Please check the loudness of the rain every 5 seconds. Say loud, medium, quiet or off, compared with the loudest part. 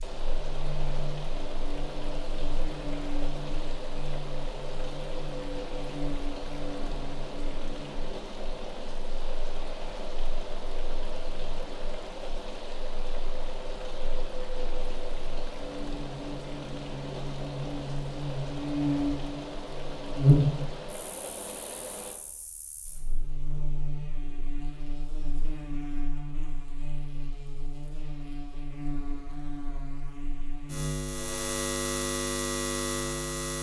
loud, loud, loud, loud, loud, off, off.